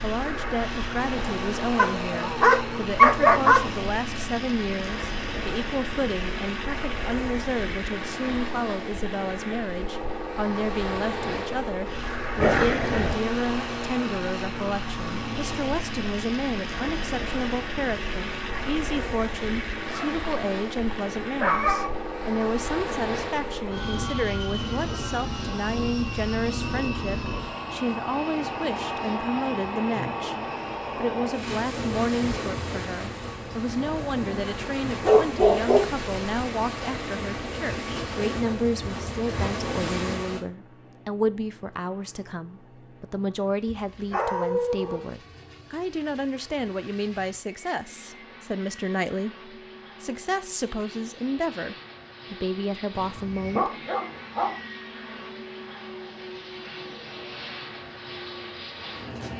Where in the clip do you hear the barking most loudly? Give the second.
3 s.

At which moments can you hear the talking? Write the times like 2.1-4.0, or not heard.
0.0-53.7.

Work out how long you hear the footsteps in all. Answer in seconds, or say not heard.
not heard.